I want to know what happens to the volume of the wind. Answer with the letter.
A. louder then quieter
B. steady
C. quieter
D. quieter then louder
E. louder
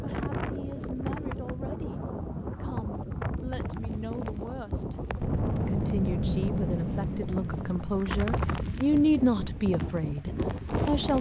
B.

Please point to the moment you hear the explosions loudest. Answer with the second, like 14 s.
6 s.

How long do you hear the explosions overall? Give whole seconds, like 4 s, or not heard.
3 s.